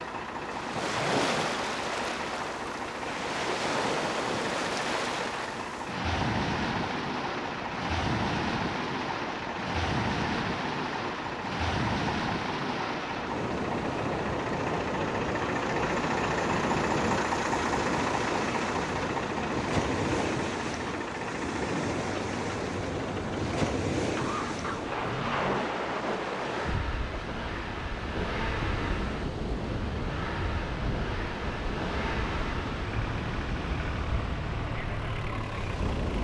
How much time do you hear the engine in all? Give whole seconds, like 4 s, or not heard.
36 s.